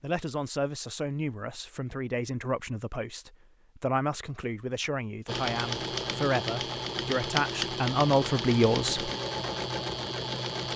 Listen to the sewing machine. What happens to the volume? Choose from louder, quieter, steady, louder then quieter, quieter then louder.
steady.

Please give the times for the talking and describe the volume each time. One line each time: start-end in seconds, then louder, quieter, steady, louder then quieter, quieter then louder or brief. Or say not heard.
0.0-9.1 louder.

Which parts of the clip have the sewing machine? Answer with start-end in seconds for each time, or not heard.
5.2-10.7.